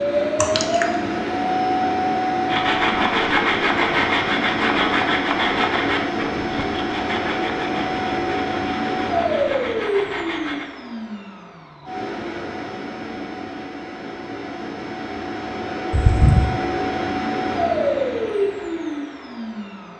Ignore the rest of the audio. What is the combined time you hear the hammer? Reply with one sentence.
You can't hear the hammer here.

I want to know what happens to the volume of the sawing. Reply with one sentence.
The volume of the sawing goes down.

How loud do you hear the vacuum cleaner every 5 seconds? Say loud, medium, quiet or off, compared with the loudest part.
loud, loud, medium, loud.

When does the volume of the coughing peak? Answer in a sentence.
The loudest moment of the coughing is at 16 seconds.